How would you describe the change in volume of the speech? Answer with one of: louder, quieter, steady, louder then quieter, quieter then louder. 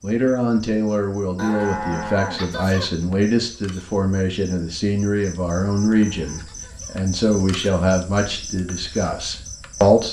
steady.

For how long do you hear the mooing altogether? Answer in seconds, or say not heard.
3 s.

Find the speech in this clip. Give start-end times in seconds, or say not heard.
0.0-10.0.